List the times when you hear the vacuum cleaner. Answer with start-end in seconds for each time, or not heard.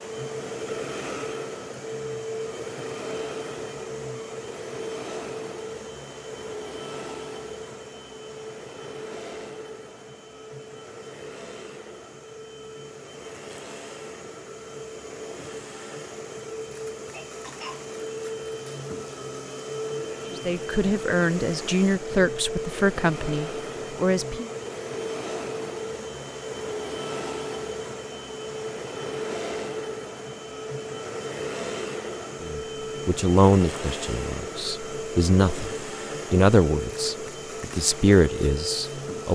0.0-39.2.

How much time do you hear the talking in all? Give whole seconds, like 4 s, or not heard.
11 s.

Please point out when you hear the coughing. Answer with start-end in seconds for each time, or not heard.
17.1-17.9.